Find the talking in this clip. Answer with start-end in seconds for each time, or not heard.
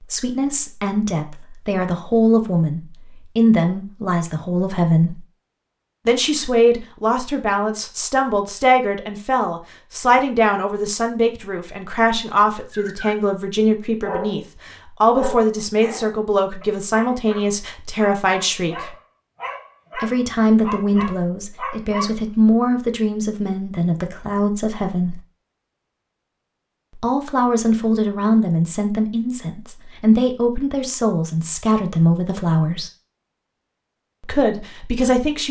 0.1-5.2, 6.0-18.9, 19.9-25.2, 27.0-32.9, 34.2-35.4.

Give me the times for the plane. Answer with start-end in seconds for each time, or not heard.
not heard.